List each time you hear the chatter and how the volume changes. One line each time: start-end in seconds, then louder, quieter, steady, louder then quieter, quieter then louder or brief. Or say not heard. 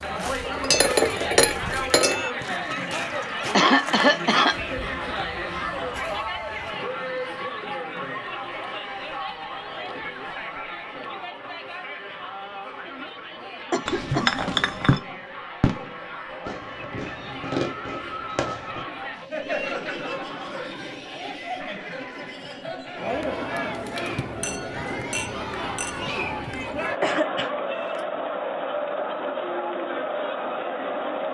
0.0-31.2 quieter then louder.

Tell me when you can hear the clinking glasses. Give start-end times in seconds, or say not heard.
0.5-2.3, 13.8-15.0, 24.4-26.6.